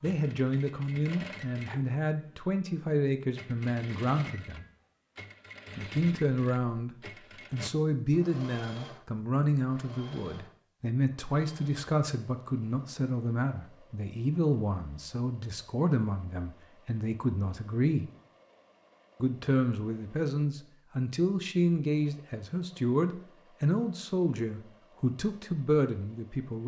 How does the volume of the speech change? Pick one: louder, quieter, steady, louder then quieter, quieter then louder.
steady.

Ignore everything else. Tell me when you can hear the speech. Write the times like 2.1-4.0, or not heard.
0.0-4.7, 5.8-18.1, 19.2-26.6.